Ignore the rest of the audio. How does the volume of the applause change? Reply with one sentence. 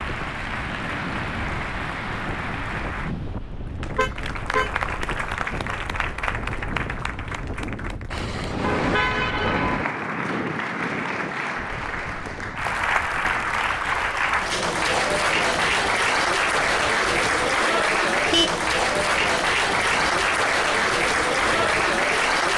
The volume of the applause goes up.